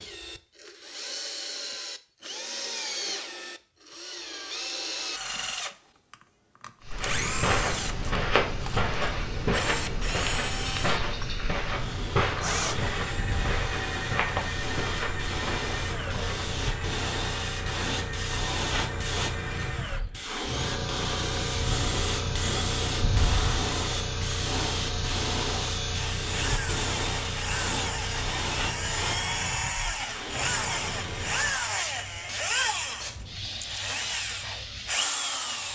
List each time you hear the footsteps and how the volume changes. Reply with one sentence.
The footsteps can be heard from 6.9 to 16.6 s, getting quieter.